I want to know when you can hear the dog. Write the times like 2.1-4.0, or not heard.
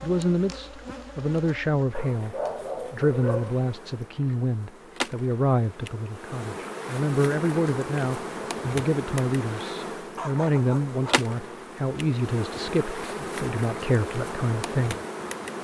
1.9-3.5, 10.2-11.3.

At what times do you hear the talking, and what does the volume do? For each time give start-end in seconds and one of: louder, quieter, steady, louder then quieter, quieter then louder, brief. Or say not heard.
0.0-14.9 steady.